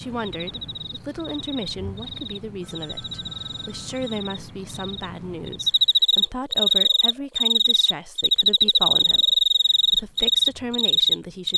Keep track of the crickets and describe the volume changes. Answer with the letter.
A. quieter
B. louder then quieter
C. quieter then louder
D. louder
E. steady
D.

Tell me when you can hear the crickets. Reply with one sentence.
You can hear the crickets from 0.4 to 11.5 s.